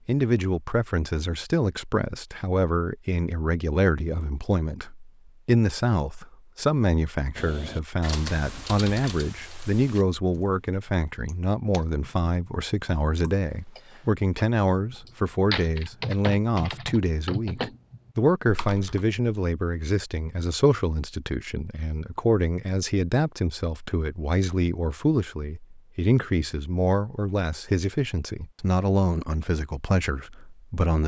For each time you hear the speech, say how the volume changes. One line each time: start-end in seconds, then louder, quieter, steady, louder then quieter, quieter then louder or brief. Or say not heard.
0.1-31.0 steady.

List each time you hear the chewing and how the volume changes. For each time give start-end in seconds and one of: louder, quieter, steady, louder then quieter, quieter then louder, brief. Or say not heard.
not heard.